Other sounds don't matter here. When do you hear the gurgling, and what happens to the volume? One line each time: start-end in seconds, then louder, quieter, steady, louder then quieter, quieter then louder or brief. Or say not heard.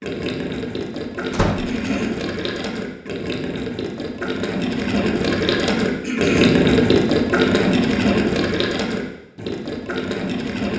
0.0-10.7 louder then quieter.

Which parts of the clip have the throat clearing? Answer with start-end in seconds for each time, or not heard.
1.6-2.2, 6.0-6.7.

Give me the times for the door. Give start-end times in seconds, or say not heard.
1.3-1.8.